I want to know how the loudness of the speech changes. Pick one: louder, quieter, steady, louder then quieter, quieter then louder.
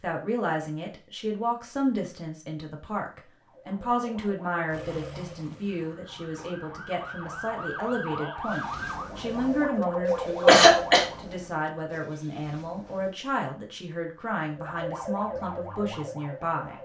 steady.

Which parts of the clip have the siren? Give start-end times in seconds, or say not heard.
3.4-11.3, 14.5-16.8.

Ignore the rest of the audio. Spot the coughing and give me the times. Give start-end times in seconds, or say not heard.
9.9-11.1.